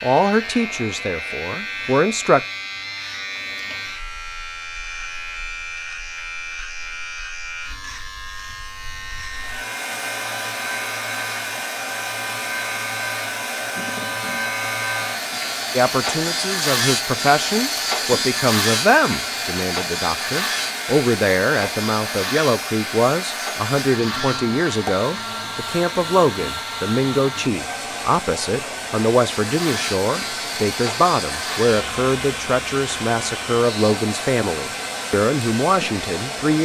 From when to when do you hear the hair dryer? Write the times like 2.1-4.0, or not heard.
9.3-36.6.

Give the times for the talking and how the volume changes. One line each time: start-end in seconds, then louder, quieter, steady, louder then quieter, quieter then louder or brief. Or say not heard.
0.0-2.4 brief
15.7-36.6 steady.